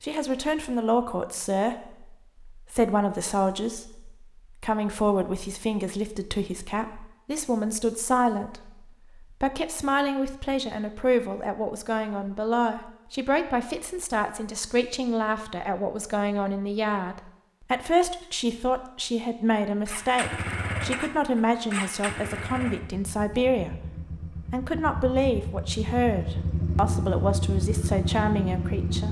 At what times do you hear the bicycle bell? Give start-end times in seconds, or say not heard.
not heard.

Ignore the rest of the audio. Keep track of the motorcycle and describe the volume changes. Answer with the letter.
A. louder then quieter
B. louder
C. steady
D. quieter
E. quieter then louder
E.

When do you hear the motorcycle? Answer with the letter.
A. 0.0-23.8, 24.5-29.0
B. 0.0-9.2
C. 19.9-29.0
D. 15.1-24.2
C.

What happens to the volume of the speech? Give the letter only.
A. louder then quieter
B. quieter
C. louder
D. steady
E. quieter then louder
D.